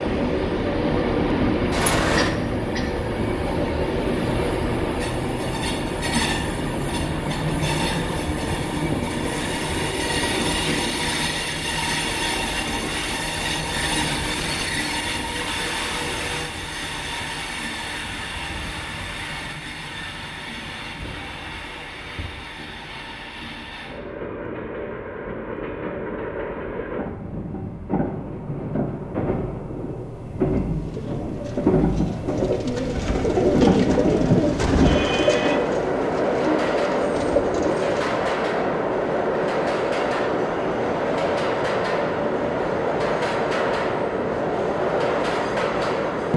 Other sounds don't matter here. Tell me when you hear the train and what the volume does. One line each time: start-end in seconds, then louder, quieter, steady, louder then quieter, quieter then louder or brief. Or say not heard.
0.0-46.3 quieter then louder.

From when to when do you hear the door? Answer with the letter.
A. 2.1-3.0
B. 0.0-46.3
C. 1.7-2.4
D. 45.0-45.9
C.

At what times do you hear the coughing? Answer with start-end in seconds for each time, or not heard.
2.1-3.0.